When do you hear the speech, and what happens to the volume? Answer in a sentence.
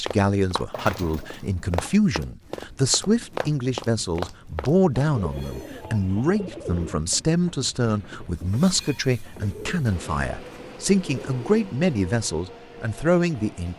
You can hear the speech from 0.0 to 13.7 s, at a steady volume.